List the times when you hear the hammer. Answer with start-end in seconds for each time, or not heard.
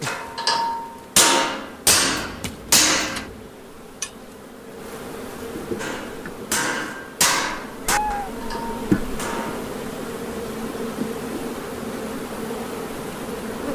0.0-3.2, 5.8-9.7.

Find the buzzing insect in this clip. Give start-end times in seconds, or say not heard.
0.0-13.7.